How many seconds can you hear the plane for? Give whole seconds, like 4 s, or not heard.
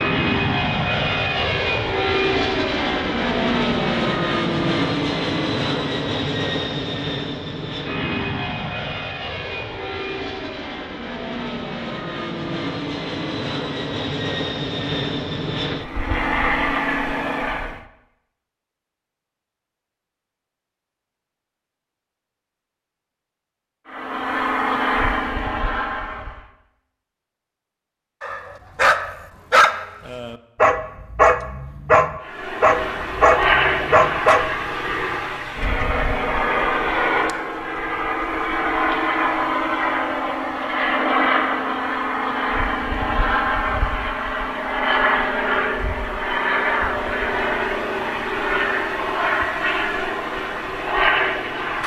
40 s.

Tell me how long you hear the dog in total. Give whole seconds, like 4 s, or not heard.
6 s.